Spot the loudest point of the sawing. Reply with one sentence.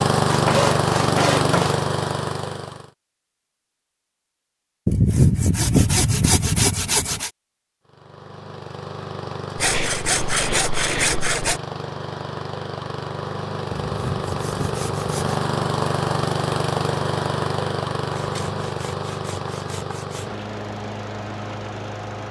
The volume of the sawing peaks at 5 seconds.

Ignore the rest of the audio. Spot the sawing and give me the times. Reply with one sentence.
The sawing can be heard from 0.2 to 1.8 s, from 4.8 to 7.3 s, from 9.6 to 11.6 s, from 13.7 to 15.4 s and from 18.1 to 20.4 s.